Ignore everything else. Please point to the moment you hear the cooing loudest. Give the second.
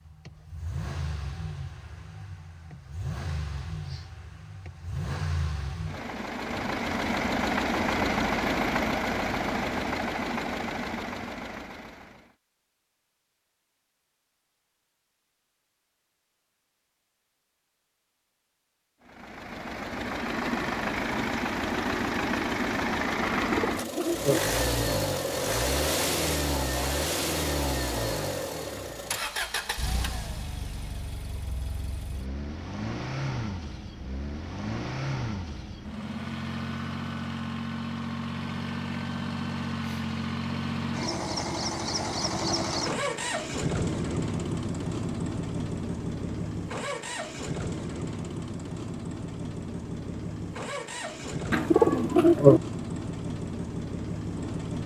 52 s.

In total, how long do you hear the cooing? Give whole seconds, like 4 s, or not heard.
2 s.